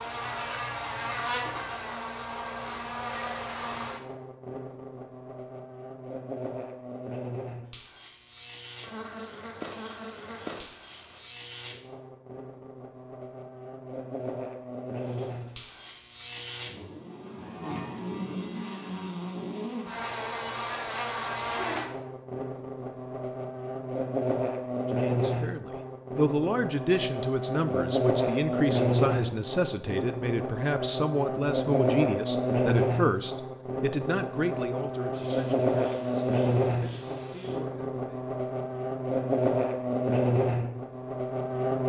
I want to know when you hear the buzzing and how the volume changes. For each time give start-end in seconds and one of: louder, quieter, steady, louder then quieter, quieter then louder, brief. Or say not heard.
0.0-41.8 louder.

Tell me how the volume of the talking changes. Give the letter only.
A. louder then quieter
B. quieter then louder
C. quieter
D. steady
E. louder
C.